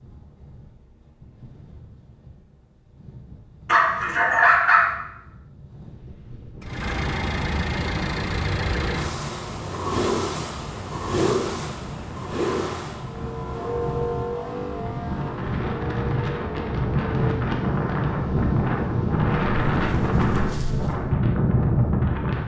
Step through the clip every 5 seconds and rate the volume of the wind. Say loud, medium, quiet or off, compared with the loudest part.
quiet, quiet, quiet, loud, loud.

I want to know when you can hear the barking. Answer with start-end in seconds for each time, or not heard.
3.6-4.9, 19.4-20.9.